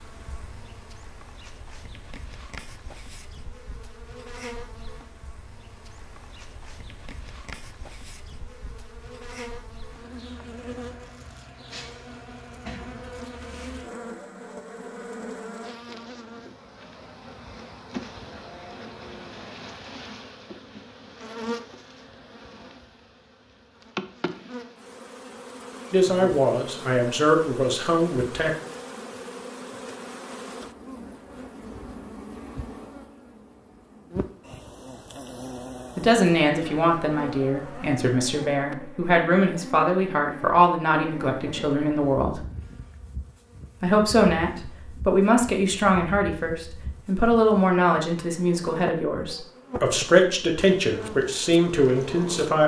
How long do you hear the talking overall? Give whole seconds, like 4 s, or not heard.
18 s.